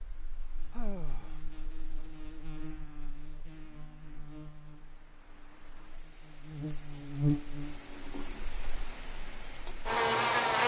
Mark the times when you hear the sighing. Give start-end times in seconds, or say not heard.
0.7-1.4.